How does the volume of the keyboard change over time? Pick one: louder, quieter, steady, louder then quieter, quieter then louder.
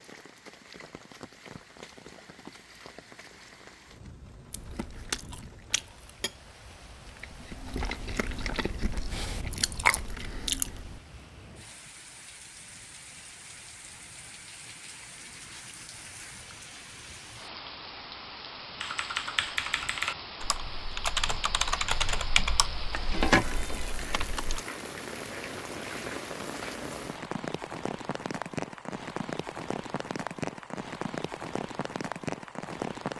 quieter.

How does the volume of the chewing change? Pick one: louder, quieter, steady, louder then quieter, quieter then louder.
quieter then louder.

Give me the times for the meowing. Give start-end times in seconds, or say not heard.
22.9-24.2.